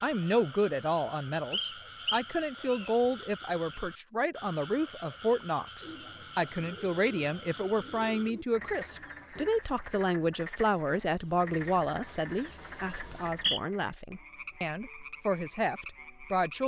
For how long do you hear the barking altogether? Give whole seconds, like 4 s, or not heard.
not heard.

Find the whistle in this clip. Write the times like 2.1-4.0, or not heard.
1.5-2.9, 13.2-13.6.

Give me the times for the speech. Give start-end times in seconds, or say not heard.
0.0-16.6.